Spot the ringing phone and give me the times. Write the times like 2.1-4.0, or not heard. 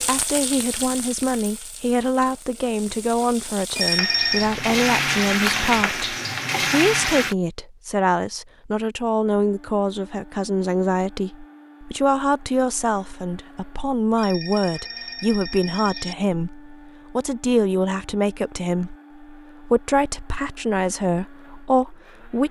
3.8-4.5, 14.2-16.1.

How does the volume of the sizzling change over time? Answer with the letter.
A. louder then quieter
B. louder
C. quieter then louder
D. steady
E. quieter
C.